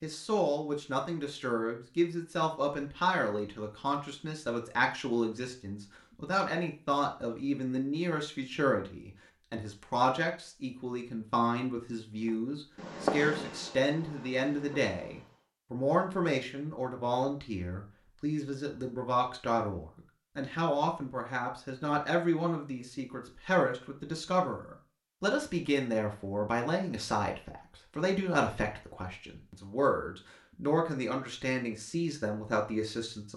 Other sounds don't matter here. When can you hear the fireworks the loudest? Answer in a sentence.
The loudest moment of the fireworks is at 13 seconds.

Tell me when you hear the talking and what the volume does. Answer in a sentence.
You can hear the talking from 0.0 to 33.3 s, at a steady volume.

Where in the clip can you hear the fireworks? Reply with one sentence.
The fireworks can be heard from 12.1 to 15.4 s.